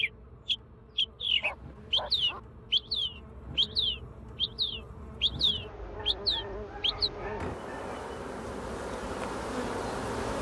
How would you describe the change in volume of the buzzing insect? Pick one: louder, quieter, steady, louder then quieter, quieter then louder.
louder.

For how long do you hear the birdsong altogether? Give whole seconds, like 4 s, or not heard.
7 s.